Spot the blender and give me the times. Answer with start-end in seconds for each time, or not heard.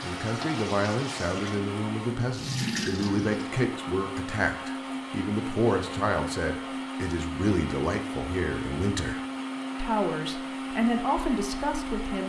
0.0-12.2.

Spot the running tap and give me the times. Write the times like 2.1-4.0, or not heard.
0.0-3.6.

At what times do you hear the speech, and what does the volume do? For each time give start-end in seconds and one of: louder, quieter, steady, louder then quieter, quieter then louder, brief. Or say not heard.
0.0-12.2 steady.